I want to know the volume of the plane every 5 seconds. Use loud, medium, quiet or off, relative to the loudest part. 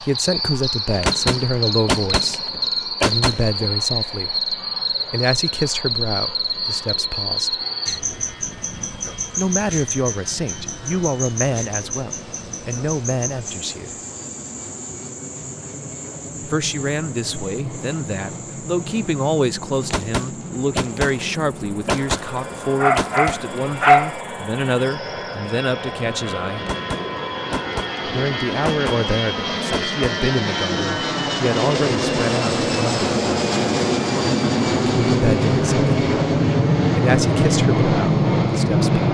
quiet, quiet, quiet, quiet, quiet, medium, loud, loud.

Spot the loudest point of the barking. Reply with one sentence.
The volume of the barking peaks at 24 seconds.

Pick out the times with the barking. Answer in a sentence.
The barking can be heard from 22.8 to 24.1 s.